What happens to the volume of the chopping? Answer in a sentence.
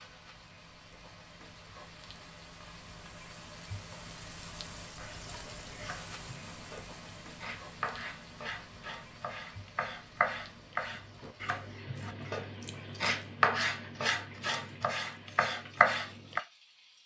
The loudness of the chopping goes up.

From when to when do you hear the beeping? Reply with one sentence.
You can't hear the beeping here.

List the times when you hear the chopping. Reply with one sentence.
The chopping can be heard from 5.0 to 16.4 s.